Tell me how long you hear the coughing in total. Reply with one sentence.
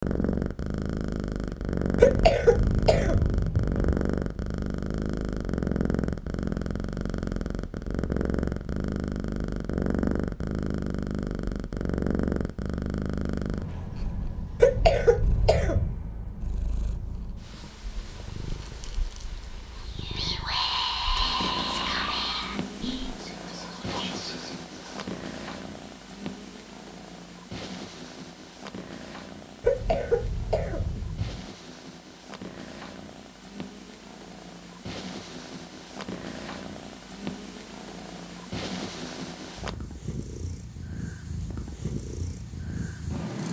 You can hear the coughing for 5 seconds altogether.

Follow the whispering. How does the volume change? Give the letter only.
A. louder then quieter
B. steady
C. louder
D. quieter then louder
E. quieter
E.